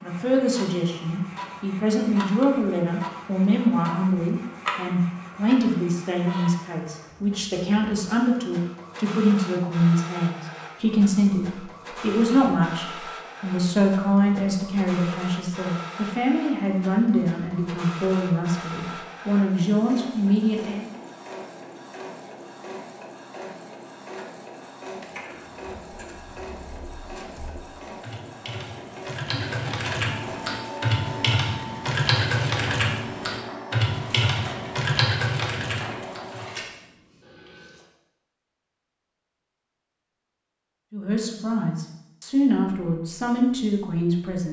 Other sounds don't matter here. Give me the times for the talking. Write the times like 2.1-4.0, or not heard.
0.0-20.9, 40.9-44.4.